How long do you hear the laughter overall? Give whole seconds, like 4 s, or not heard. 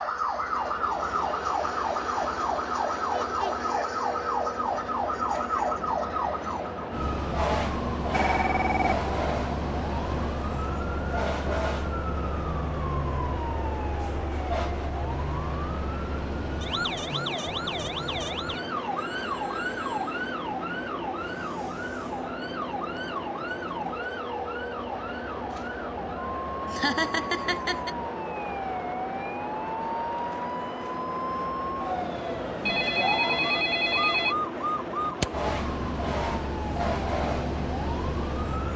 2 s.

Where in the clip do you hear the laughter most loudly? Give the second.
27 s.